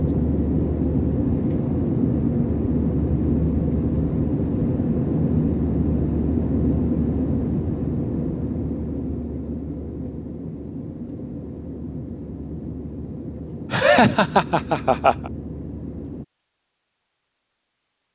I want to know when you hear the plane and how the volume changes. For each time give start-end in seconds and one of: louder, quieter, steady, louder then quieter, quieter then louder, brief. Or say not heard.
0.0-16.2 quieter.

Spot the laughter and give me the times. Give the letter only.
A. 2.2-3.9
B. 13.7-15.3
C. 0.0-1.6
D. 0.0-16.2
B.